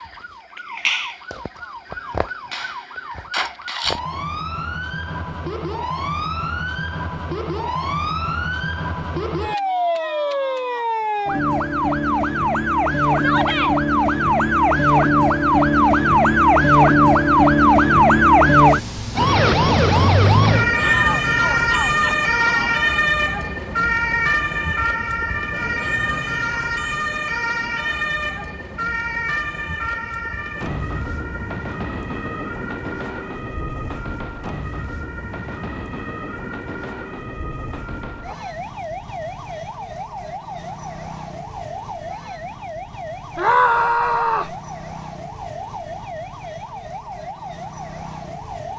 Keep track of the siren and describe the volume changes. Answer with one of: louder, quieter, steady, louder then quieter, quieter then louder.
louder then quieter.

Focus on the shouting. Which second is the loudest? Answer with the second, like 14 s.
44 s.